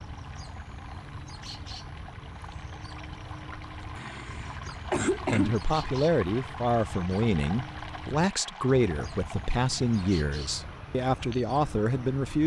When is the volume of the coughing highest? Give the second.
5 s.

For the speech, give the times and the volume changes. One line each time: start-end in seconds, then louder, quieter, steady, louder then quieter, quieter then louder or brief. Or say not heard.
5.2-12.4 steady.